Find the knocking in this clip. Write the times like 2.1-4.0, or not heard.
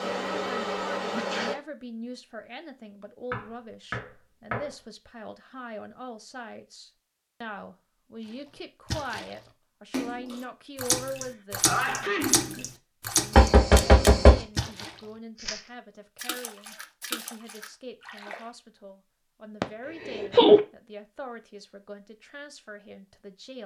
3.3-4.7, 13.3-14.4.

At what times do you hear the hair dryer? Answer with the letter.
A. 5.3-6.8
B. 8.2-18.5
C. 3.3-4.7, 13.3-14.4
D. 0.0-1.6
D.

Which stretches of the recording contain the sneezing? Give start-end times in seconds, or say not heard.
1.1-1.6, 11.7-12.7, 19.6-20.6.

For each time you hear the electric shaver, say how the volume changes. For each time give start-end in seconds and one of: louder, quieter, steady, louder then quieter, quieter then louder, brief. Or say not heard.
not heard.